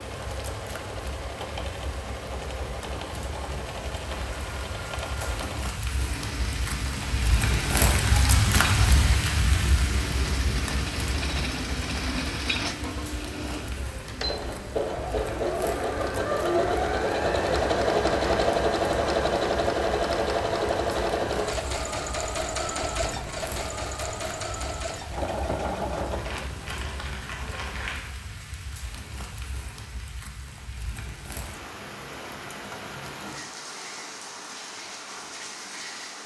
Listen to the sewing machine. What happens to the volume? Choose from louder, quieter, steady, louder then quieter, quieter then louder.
louder then quieter.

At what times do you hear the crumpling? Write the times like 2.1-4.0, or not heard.
26.1-28.1.